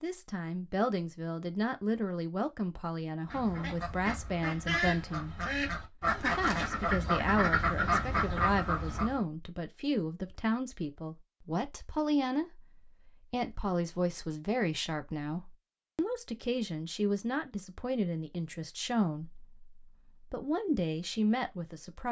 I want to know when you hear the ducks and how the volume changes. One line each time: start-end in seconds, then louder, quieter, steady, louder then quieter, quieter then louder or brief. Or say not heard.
3.2-9.2 louder.